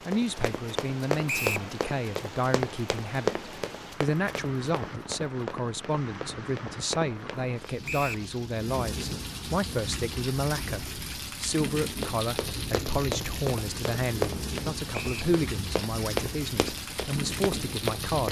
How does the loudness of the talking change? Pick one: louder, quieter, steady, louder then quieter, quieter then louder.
steady.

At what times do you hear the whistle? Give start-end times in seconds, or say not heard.
1.2-1.7, 7.8-8.2, 14.9-15.3.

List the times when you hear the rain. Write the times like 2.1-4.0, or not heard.
0.0-18.2.